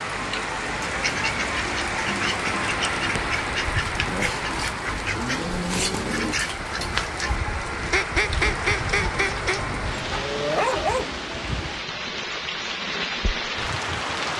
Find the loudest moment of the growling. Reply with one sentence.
The loudest moment of the growling is at 11 seconds.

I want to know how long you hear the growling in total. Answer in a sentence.
You can hear the growling for 2 seconds altogether.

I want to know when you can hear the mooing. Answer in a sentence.
The mooing can be heard from 5.0 to 6.3 s.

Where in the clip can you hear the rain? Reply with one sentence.
You can hear the rain from 0.0 to 14.3 s.